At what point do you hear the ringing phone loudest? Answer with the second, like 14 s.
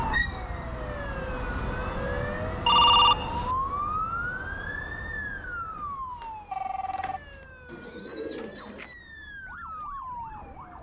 3 s.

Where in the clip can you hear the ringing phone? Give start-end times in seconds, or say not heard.
2.6-3.5, 5.8-7.2.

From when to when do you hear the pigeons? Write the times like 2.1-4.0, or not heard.
7.7-8.9.